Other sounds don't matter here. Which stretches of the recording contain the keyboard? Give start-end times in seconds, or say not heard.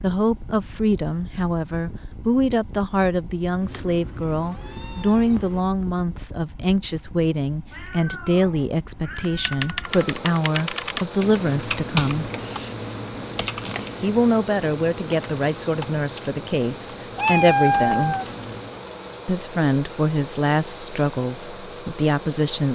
9.2-18.8.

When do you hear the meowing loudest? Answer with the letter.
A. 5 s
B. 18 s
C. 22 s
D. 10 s
B.